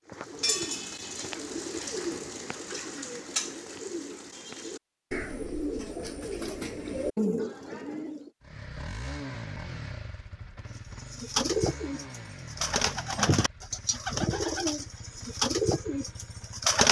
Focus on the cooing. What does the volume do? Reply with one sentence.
The loudness of the cooing goes up.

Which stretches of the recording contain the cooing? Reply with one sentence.
The cooing can be heard from 0.1 to 8.3 s and from 11.1 to 16.8 s.